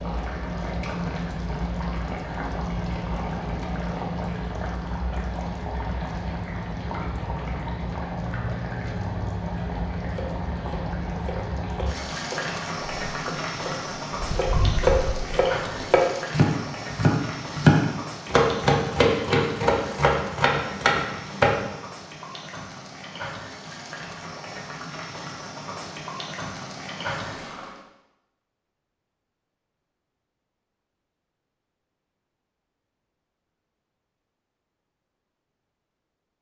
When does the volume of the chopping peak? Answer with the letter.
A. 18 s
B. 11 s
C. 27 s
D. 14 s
A.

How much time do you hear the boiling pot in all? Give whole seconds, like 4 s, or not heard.
28 s.